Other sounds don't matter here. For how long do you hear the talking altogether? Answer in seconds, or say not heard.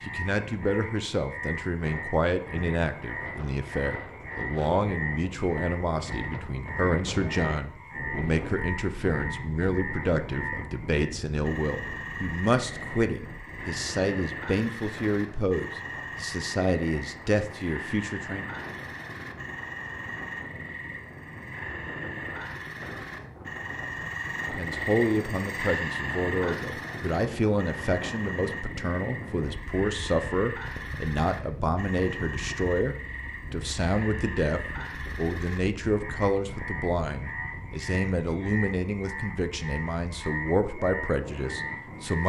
36 s.